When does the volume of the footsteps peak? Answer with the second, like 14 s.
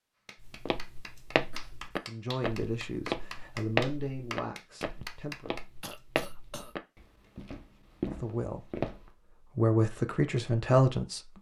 4 s.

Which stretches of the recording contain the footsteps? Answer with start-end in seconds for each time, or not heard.
0.4-9.1.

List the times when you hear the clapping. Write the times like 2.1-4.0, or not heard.
0.2-5.7.